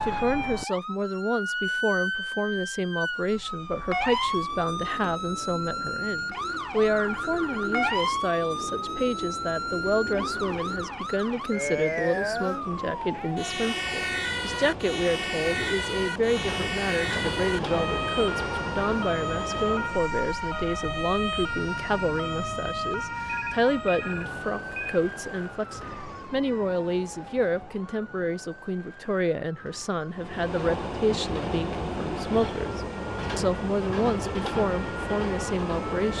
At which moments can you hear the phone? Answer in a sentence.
The phone can be heard from 7.0 to 8.1 s and from 23.2 to 25.0 s.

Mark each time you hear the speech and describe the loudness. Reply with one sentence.
The speech can be heard from 0.1 to 36.1 s, at a steady volume.